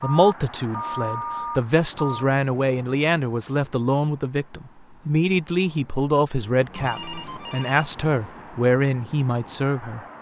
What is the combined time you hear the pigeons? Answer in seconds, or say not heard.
not heard.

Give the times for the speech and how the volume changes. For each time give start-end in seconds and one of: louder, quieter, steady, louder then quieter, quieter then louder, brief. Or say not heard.
0.0-10.0 steady.